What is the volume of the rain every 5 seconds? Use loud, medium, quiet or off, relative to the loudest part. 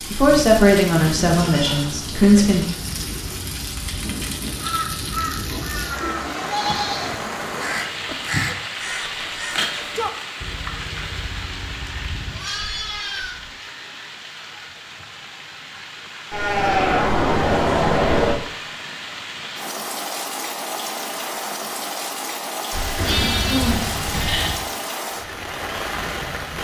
loud, loud, medium, medium, loud, loud.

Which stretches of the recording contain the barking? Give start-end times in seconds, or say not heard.
not heard.